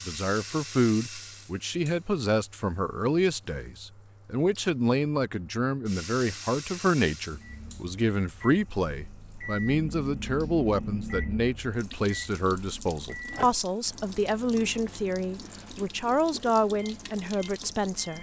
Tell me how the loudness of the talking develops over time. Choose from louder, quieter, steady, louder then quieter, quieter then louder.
steady.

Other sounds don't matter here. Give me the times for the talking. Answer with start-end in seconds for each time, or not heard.
0.1-18.1.